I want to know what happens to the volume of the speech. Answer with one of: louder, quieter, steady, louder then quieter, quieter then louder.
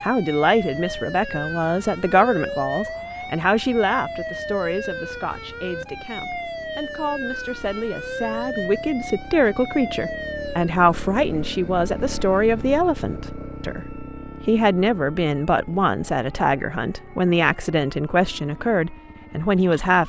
quieter then louder.